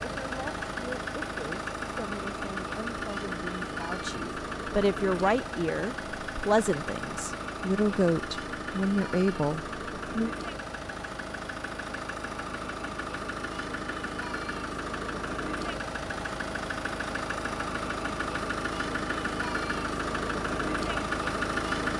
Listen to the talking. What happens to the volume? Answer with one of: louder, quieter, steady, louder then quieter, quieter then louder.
louder.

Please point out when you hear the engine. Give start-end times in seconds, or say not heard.
0.0-21.9.